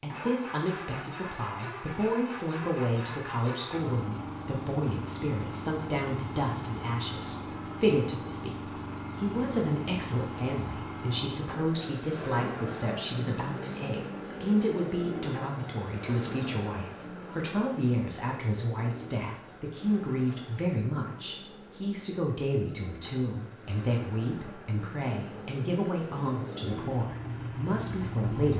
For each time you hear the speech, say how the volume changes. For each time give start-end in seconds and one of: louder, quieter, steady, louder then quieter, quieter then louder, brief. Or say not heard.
0.0-28.5 steady.